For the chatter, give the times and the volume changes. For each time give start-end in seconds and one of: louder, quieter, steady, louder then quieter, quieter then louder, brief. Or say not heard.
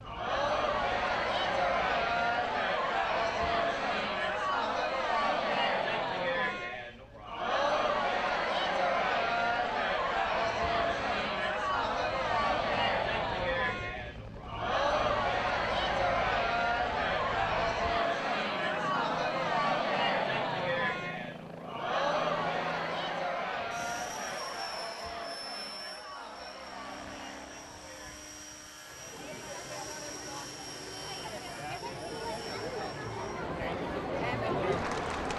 0.0-35.3 quieter.